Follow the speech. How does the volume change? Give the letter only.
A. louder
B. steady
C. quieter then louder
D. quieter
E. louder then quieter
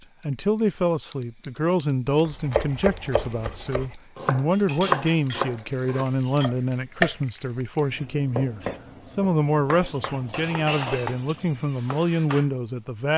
B.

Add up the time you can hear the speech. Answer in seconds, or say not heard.
13 s.